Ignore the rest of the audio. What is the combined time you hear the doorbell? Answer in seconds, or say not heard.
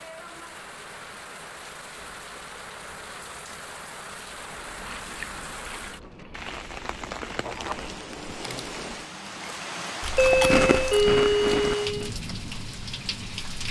2 s.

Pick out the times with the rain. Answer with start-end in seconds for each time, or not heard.
0.0-13.6.